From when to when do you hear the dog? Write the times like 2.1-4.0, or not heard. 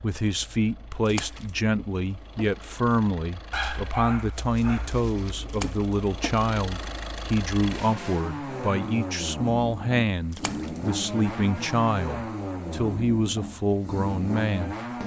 3.5-5.2.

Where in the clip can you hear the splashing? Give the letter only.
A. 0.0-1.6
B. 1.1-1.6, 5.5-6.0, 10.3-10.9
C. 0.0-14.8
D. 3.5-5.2
B.